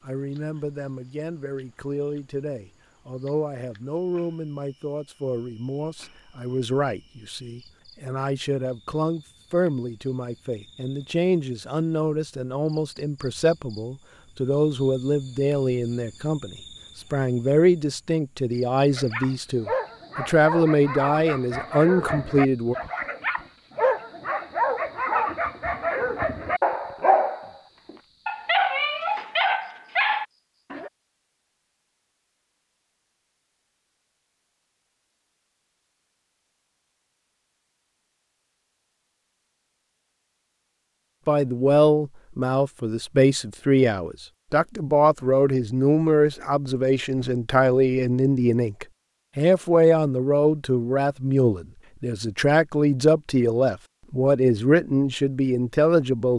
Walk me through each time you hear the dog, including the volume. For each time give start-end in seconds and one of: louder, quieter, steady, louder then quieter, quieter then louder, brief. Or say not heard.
18.9-30.9 louder.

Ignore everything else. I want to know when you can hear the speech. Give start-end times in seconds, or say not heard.
0.0-22.8, 41.2-56.3.